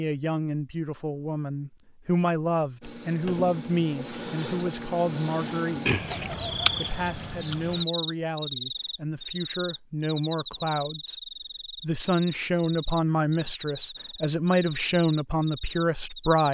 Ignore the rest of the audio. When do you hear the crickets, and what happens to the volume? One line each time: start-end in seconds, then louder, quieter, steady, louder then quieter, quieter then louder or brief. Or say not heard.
2.8-16.4 quieter.